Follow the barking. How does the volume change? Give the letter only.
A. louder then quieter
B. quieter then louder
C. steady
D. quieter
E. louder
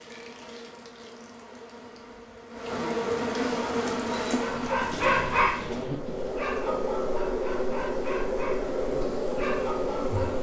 D.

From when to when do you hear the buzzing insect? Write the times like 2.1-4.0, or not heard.
0.0-10.3.